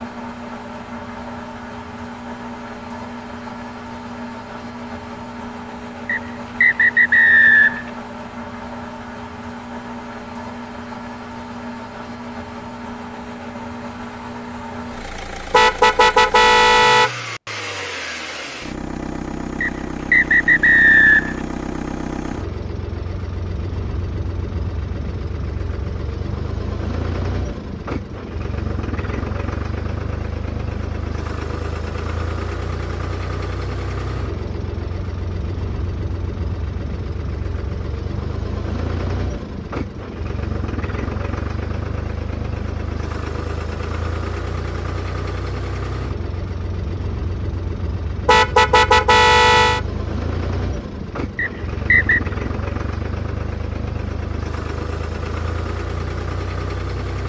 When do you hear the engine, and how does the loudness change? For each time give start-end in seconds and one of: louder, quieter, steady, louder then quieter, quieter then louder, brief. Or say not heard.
0.0-57.2 steady.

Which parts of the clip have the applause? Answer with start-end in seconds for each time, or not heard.
not heard.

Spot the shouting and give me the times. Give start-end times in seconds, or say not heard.
not heard.